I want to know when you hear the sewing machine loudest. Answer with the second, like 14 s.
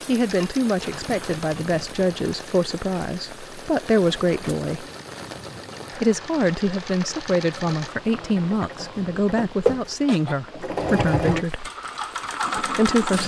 11 s.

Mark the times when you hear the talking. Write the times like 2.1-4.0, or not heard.
0.1-4.8, 6.0-11.7, 12.6-13.2.